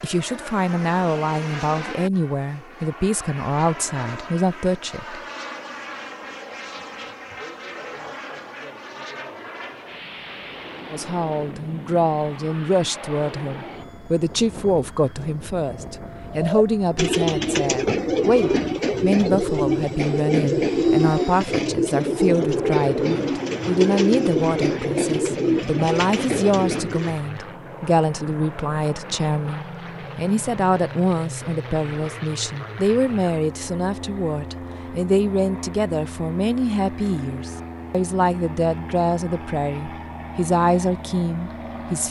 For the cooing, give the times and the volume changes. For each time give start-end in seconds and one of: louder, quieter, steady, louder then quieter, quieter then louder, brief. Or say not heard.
16.3-27.2 steady.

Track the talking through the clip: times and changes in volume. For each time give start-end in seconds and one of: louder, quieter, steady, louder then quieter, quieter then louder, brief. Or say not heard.
0.0-5.2 steady
10.9-42.0 steady.